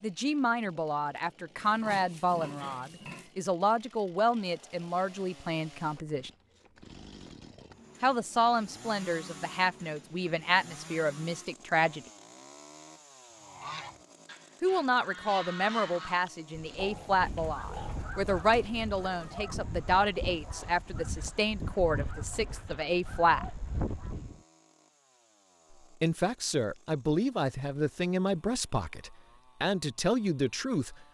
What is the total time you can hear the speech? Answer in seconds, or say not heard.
24 s.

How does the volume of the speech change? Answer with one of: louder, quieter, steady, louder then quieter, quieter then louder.
steady.